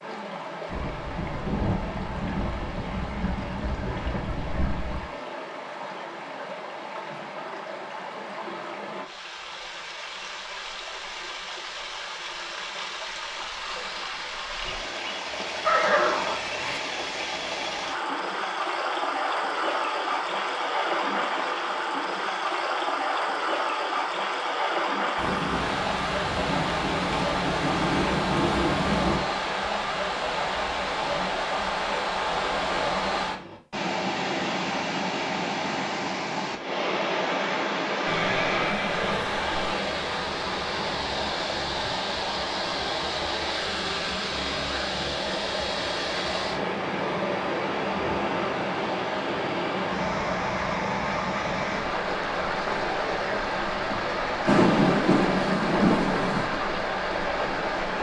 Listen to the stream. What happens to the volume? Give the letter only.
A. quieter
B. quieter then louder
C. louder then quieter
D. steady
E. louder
E.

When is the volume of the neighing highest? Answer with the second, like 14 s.
16 s.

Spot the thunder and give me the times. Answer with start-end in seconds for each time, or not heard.
0.7-5.1, 25.1-29.2, 54.5-56.5.